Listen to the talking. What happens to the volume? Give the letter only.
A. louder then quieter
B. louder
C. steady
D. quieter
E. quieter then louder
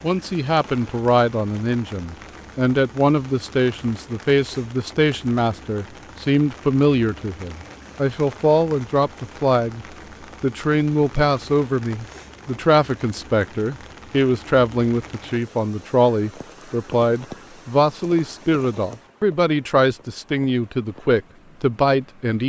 C.